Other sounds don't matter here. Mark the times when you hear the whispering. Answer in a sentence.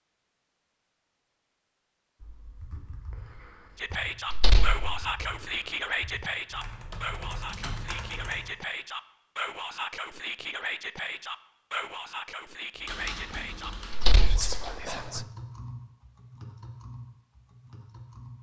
You can hear the whispering from 3.8 to 15.2 s.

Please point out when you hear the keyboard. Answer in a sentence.
The keyboard can be heard from 2.2 to 8.5 s and from 12.8 to 18.3 s.